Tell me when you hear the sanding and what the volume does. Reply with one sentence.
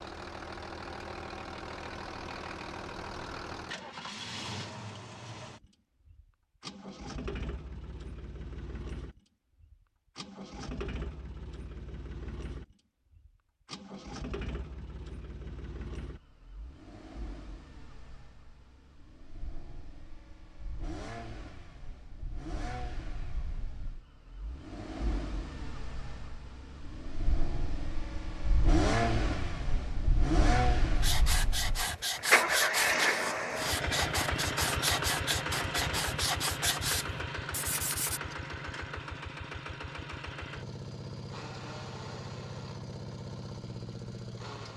The sanding can be heard from 30.9 to 38.2 s, at a steady volume.